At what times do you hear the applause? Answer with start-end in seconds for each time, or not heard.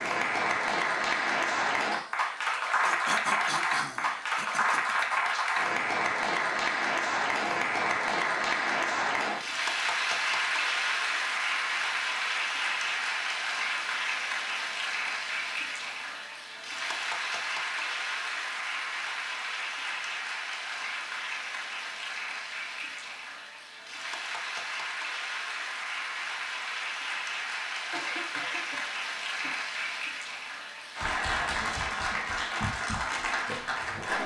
0.0-34.2.